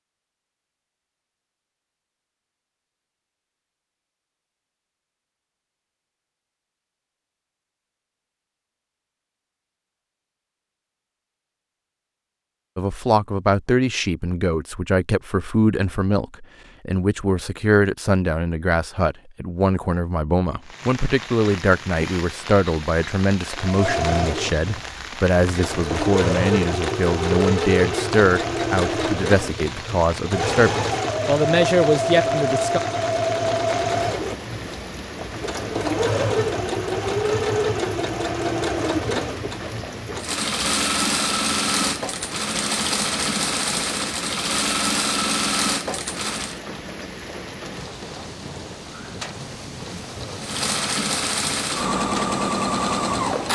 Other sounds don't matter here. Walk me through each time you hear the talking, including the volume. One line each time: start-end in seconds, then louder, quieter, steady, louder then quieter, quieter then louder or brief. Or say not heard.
12.8-32.8 steady.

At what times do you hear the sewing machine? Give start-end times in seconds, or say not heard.
23.6-46.6, 50.4-53.5.